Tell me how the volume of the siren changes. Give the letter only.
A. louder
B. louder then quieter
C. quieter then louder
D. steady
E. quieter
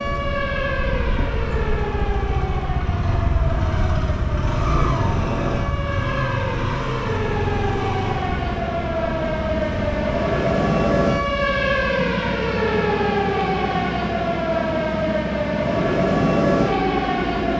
A.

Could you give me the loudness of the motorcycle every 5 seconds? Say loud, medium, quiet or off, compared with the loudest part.
loud, loud, medium, loud.